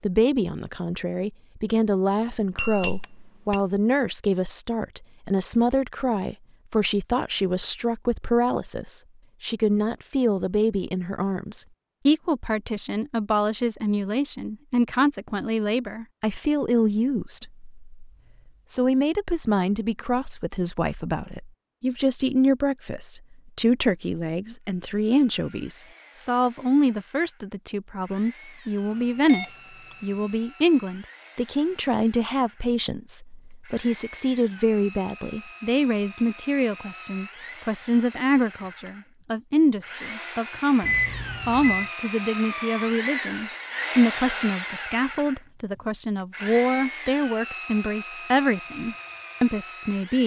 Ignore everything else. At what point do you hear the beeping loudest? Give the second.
41 s.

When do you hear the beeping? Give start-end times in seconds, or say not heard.
2.5-3.6, 29.2-29.9, 40.8-41.9.